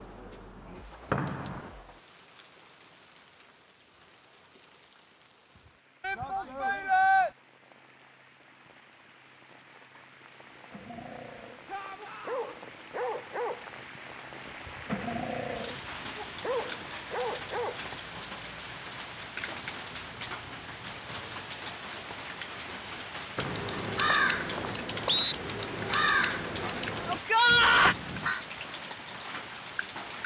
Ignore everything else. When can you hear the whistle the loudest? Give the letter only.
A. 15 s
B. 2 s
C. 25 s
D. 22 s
C.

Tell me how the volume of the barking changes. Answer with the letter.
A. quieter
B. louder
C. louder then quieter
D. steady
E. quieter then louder
B.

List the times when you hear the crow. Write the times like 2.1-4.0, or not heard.
22.9-28.4.